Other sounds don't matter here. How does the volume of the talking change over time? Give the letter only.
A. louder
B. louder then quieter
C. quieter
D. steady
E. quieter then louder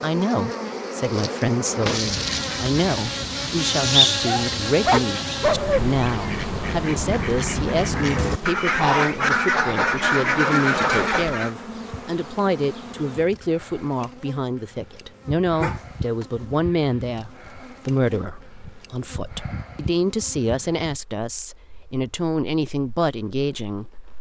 D.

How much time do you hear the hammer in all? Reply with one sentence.
You can't hear the hammer here.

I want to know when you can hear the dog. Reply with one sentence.
The dog can be heard from 4.2 to 5.8 s and from 15.6 to 16.4 s.